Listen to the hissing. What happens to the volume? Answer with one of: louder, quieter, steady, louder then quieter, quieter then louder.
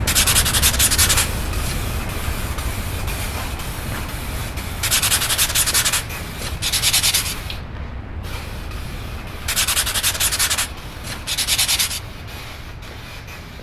quieter.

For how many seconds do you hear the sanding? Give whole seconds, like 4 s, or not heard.
7 s.